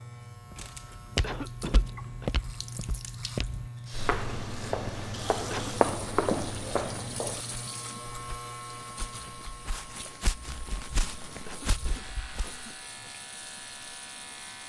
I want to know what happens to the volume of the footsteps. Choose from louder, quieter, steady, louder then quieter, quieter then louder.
louder then quieter.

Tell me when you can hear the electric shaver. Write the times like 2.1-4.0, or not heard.
0.0-14.6.